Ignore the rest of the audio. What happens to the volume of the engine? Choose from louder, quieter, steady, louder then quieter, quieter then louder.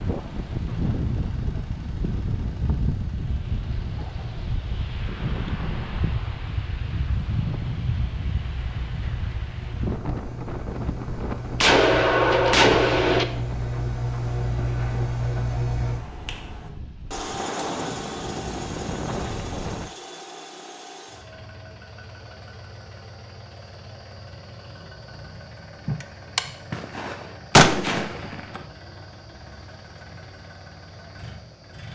louder then quieter.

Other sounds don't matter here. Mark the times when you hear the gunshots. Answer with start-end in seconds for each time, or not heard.
11.6-13.2, 25.9-28.6.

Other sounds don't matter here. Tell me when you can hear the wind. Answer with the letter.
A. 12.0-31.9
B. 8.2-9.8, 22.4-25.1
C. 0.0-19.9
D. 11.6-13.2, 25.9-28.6
C.